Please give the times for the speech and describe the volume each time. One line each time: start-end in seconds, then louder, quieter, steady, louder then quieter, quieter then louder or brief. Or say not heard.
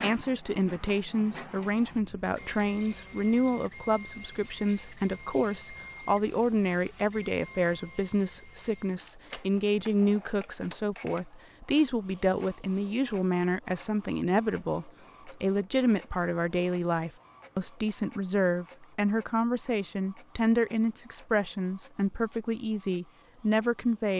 0.0-24.1 steady.